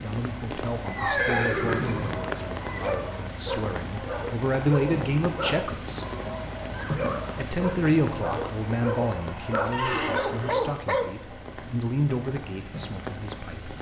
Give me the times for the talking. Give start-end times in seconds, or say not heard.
0.0-6.0, 7.3-13.7.